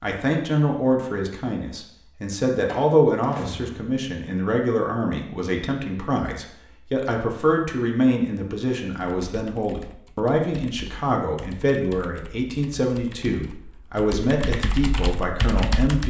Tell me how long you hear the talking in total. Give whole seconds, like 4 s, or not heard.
16 s.